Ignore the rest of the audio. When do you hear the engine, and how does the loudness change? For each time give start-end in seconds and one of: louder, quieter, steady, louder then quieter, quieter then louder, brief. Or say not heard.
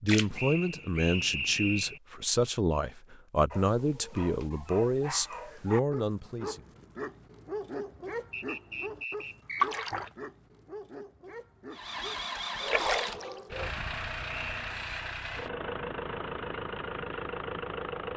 11.7-18.1 steady.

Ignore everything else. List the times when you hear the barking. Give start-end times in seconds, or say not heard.
3.5-13.7.